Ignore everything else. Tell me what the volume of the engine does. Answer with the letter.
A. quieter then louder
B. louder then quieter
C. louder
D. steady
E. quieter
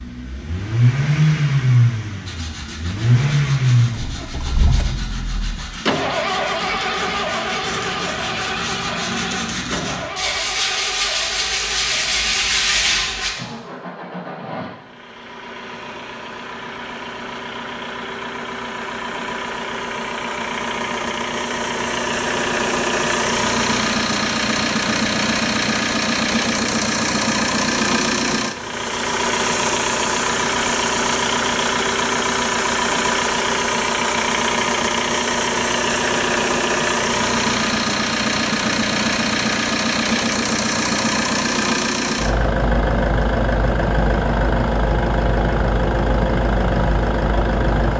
A.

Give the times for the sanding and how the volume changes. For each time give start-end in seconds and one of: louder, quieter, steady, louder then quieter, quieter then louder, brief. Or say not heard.
2.2-13.3 louder.